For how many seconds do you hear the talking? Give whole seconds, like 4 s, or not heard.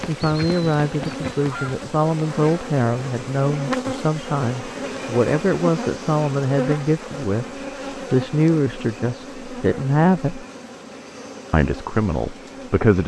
12 s.